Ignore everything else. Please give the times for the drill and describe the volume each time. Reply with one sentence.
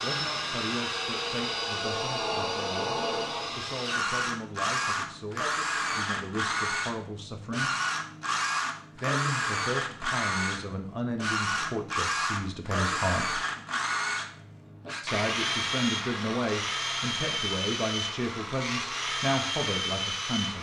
The drill can be heard from 0.0 to 20.5 s, at a steady volume.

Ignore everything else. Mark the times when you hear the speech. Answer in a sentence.
The speech can be heard from 0.0 to 7.7 s, from 8.9 to 13.4 s and from 15.0 to 20.5 s.